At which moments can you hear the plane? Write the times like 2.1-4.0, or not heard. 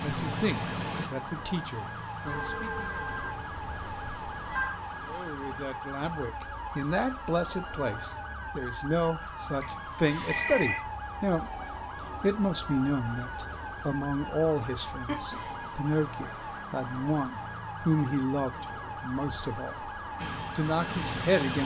0.0-5.7, 20.1-21.6.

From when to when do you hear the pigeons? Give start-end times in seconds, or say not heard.
not heard.